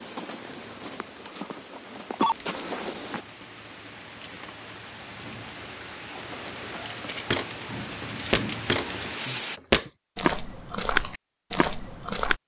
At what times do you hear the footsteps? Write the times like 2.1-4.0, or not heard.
0.0-3.2, 6.2-12.4.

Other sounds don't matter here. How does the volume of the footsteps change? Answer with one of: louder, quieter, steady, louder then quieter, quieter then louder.
louder.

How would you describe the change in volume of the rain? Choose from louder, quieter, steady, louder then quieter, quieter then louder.
louder.